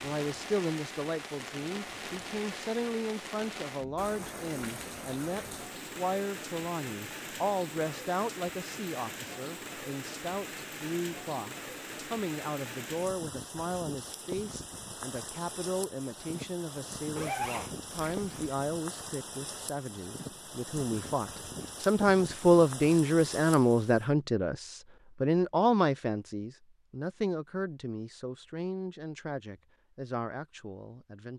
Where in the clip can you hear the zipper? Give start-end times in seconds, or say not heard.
17.1-18.6.